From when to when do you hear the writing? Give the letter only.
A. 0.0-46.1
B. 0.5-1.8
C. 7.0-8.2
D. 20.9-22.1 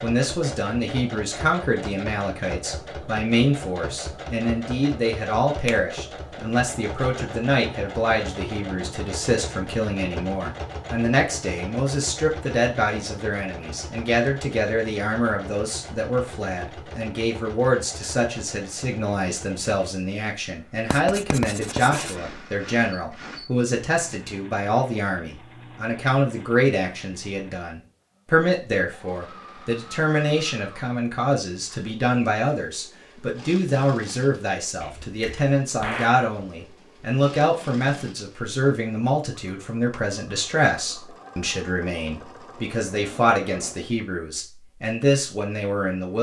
D.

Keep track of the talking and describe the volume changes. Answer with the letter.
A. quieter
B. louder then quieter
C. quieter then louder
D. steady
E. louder
D.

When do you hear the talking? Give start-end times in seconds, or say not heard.
0.0-46.1.